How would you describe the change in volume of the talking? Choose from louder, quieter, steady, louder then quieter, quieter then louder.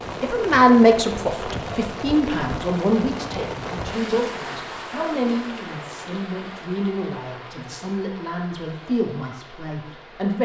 quieter.